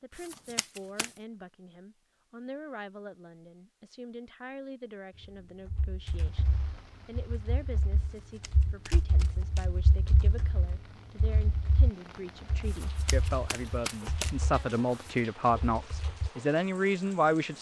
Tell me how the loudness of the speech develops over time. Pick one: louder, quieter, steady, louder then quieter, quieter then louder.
louder.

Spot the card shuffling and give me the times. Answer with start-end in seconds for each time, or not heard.
0.1-1.2, 8.0-9.7, 12.7-15.2.